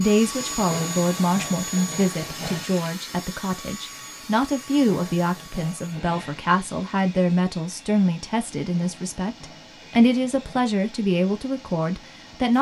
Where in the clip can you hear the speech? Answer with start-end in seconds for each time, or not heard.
0.0-12.5.